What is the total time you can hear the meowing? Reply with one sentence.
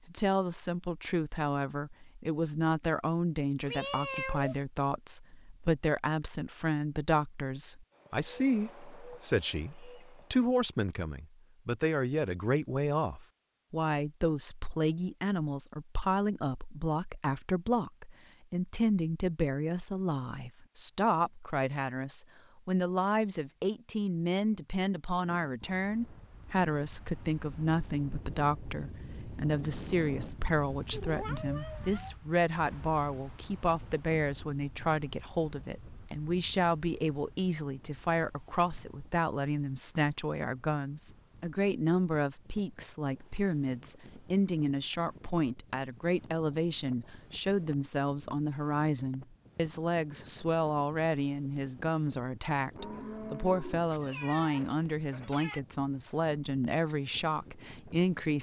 The meowing can be heard for 4 seconds in total.